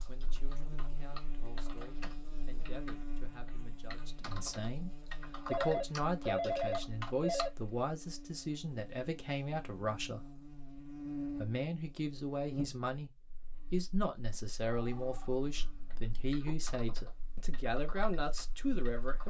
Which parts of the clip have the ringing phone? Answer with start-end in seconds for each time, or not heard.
5.5-7.5, 14.7-16.6.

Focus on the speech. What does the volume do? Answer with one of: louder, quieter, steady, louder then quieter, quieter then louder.
louder.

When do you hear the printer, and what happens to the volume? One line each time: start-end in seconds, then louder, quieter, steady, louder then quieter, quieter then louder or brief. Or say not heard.
not heard.